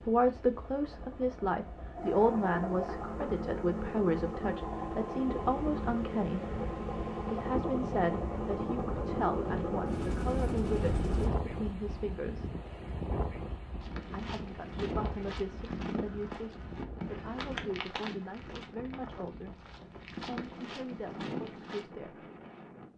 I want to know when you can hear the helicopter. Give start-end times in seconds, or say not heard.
0.0-11.3.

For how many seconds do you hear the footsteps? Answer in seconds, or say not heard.
8 s.